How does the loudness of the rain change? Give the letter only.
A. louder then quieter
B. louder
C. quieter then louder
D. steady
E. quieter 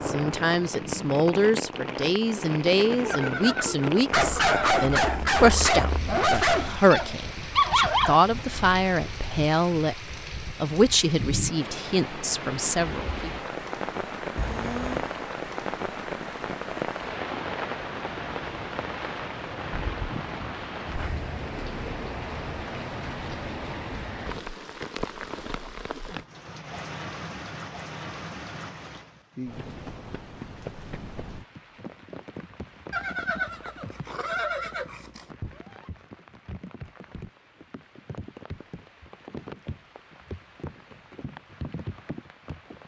E.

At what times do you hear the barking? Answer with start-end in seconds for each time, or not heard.
3.0-8.2.